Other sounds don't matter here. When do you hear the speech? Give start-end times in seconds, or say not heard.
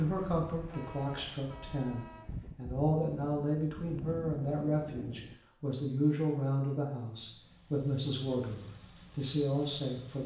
0.0-10.2.